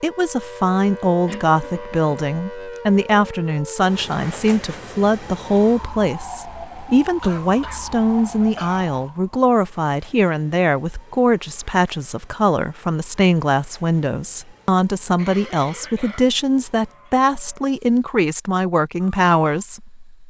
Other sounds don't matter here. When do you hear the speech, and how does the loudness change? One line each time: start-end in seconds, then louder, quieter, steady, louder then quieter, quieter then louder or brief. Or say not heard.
0.0-20.0 steady.